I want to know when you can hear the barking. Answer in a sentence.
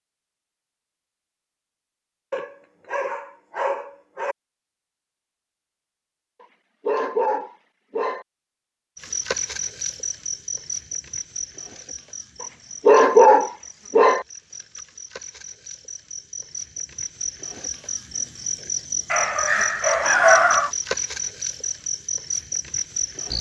You can hear the barking from 2.3 to 4.3 s, from 6.4 to 8.2 s, from 12.4 to 14.2 s and from 19.1 to 20.7 s.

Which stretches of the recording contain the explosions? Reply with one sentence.
The explosions can't be heard in this clip.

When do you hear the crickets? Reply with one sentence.
The crickets can be heard from 8.9 to 23.3 s.